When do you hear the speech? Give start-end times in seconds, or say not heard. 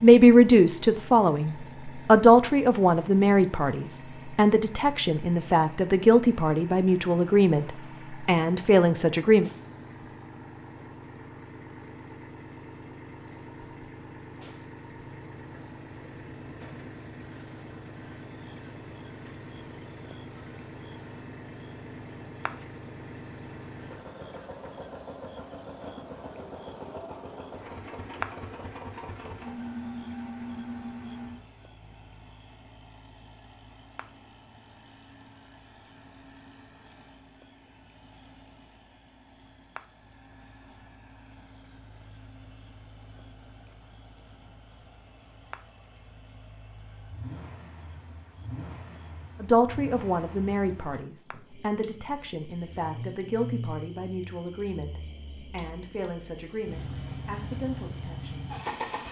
0.0-9.5, 49.4-58.5.